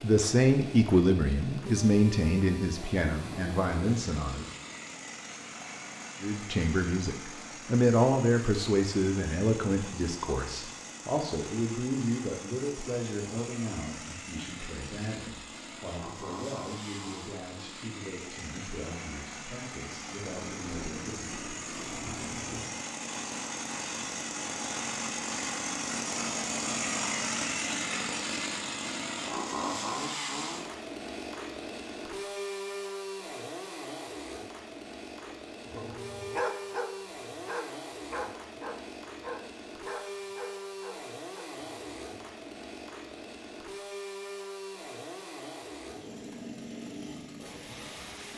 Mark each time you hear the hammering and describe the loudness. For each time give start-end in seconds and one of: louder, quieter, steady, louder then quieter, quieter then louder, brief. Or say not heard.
not heard.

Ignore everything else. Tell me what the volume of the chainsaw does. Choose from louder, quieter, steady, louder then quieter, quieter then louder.
louder then quieter.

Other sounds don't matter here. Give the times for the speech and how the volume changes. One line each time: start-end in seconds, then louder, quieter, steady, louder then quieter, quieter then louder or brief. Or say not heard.
0.0-4.5 quieter
6.2-21.4 quieter.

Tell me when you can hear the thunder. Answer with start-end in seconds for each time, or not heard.
20.4-22.8.